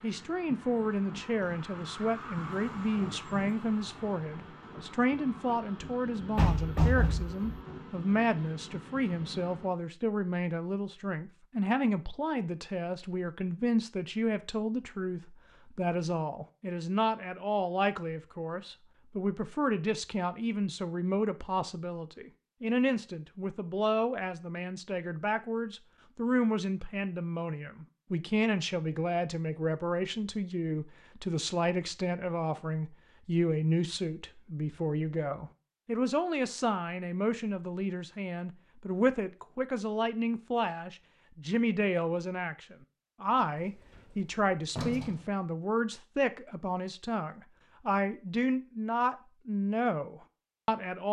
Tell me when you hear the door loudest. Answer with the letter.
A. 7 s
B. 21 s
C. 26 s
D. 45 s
A.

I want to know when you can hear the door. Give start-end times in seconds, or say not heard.
6.3-7.6, 44.0-45.2.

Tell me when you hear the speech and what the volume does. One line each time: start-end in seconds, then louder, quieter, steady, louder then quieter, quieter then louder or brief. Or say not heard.
0.0-51.0 steady.